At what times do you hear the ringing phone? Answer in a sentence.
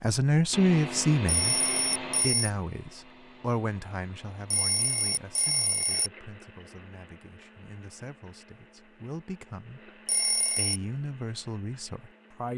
The ringing phone can be heard from 1.2 to 2.5 s, from 4.5 to 6.1 s and from 10.1 to 10.8 s.